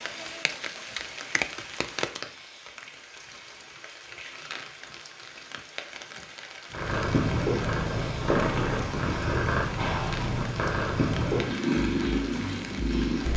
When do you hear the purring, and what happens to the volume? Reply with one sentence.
The purring can be heard from 6.7 to 13.3 s, at a steady volume.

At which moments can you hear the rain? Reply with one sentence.
The rain can be heard from 0.0 to 13.3 s.